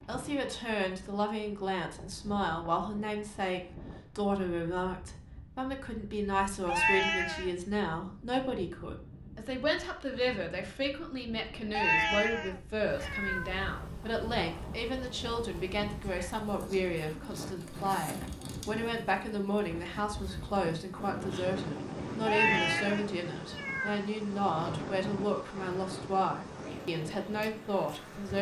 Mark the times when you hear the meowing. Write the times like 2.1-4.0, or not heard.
6.7-7.5, 11.7-13.5, 22.2-23.9.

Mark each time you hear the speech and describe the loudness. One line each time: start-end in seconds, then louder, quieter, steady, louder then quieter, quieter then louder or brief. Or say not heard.
0.1-28.3 steady.